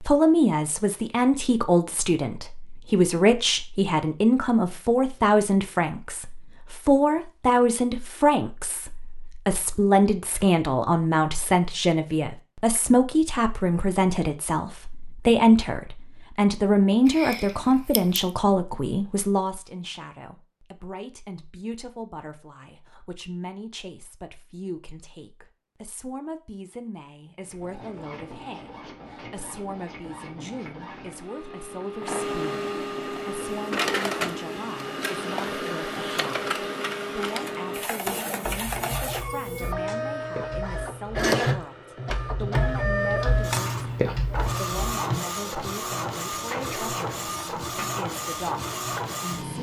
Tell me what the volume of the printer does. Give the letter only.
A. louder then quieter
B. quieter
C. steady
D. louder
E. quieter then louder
D.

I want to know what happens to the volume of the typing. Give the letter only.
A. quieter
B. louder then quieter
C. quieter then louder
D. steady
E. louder
E.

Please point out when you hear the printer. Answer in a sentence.
You can hear the printer from 27.4 to 49.5 s.